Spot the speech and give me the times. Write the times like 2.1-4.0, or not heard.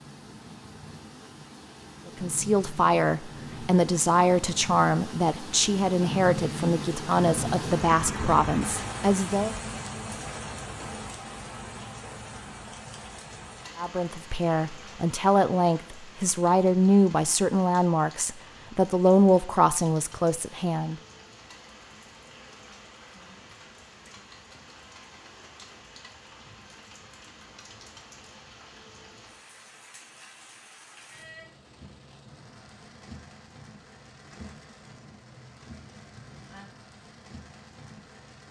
2.0-9.6, 13.8-20.9.